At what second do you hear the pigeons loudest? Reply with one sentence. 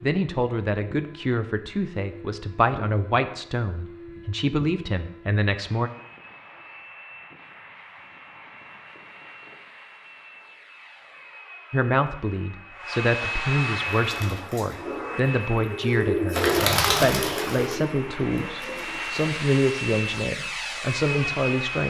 The volume of the pigeons peaks at 17 seconds.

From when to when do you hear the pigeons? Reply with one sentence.
You can hear the pigeons from 13.9 to 19.2 s.